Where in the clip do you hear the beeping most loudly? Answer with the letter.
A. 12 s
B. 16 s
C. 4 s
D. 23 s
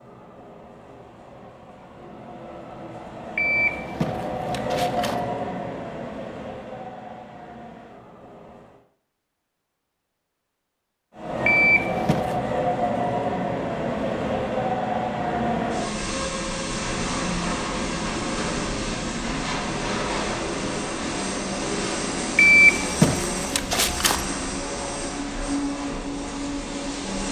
D.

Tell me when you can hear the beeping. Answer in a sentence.
The beeping can be heard from 3.4 to 5.2 s, from 11.4 to 12.3 s and from 22.4 to 24.2 s.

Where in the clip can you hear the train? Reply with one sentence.
You can hear the train from 0.0 to 8.8 s and from 11.2 to 27.2 s.